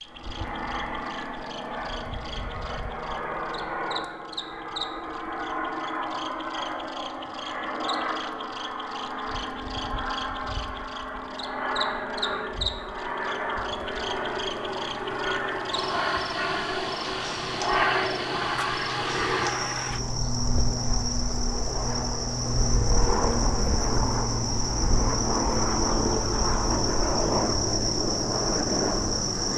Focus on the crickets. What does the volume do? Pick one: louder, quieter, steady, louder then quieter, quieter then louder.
louder.